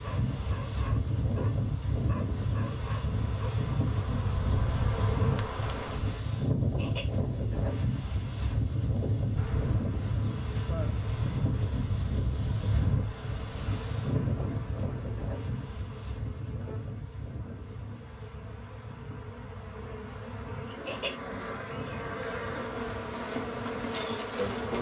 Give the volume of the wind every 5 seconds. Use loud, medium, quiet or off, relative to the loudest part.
loud, loud, loud, medium, quiet.